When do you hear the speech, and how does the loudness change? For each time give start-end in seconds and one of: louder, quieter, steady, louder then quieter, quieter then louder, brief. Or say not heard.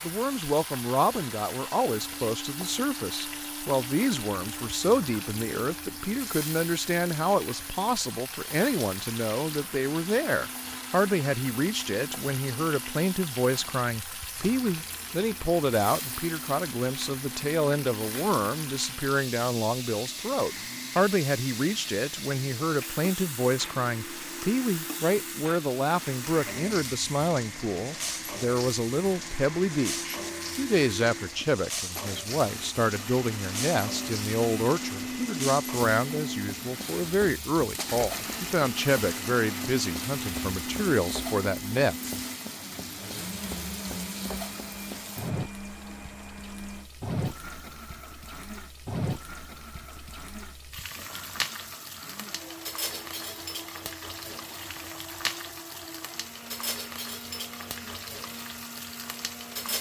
0.0-42.0 steady.